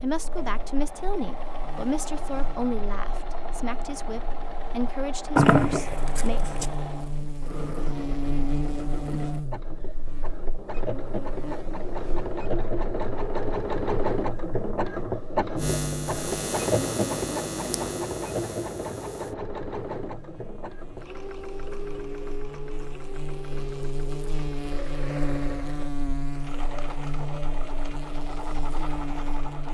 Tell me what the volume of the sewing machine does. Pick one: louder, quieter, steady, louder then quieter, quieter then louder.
louder then quieter.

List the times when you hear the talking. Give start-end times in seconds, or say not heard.
0.0-6.4.